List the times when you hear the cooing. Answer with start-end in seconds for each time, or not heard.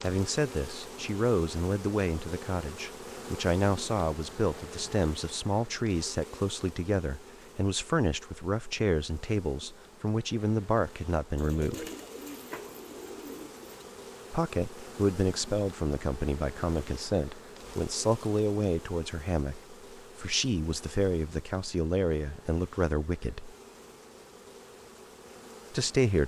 11.3-13.7.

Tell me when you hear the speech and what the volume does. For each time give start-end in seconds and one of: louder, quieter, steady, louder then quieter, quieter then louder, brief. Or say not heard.
0.0-11.9 steady
14.3-23.6 steady
25.7-26.2 brief.